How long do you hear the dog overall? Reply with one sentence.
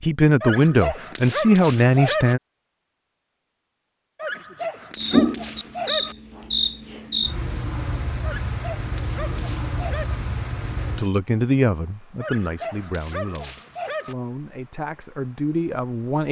You can hear the dog for 8 seconds altogether.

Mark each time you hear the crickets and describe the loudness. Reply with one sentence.
The crickets can be heard from 5.0 to 16.2 s, getting quieter.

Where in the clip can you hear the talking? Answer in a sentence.
The talking can be heard from 0.0 to 2.4 s and from 10.9 to 16.2 s.